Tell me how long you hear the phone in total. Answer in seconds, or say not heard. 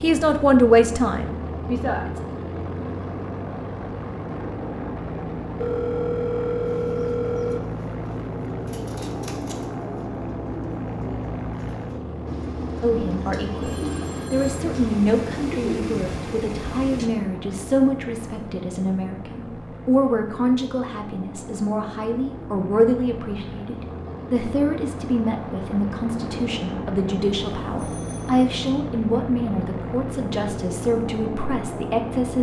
4 s.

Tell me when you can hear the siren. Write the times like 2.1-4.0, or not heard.
not heard.